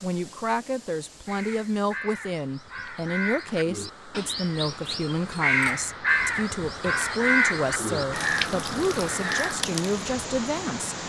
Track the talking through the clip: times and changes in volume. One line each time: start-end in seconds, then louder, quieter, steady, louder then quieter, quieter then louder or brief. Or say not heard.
0.0-11.0 steady.